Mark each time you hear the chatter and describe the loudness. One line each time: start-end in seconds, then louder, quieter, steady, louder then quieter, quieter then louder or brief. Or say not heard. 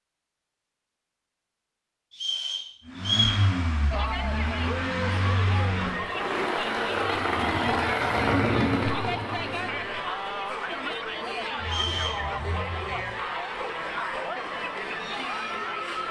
3.9-16.0 steady.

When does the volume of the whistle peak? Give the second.
3 s.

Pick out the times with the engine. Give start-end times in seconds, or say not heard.
2.9-13.2.